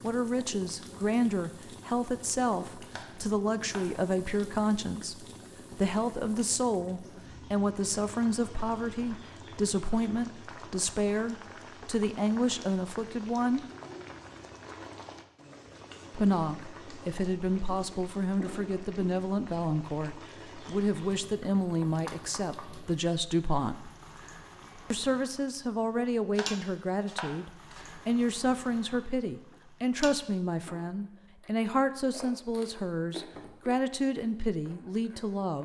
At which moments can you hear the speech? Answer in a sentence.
The speech can be heard from 0.0 to 13.7 s, from 16.1 to 23.9 s and from 24.9 to 35.6 s.